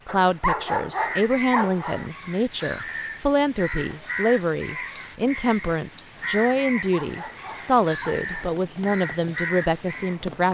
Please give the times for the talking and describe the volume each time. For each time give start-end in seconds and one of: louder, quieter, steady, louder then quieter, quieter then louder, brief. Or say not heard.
0.1-10.4 steady.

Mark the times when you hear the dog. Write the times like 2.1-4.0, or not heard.
0.1-2.1, 6.8-8.6.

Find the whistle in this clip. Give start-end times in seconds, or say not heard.
not heard.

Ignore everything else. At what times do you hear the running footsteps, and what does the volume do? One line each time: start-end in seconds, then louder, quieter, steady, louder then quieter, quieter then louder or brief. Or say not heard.
not heard.